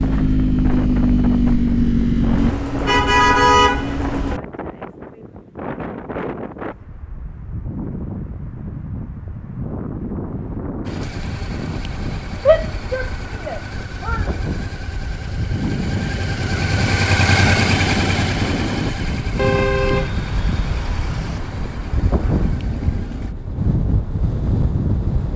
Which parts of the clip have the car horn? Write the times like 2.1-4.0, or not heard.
2.4-4.4, 19.4-21.4.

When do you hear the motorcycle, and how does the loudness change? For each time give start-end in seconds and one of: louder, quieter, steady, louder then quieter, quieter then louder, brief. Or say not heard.
0.0-2.5 brief
10.8-23.4 louder then quieter.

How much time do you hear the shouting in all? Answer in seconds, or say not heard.
2 s.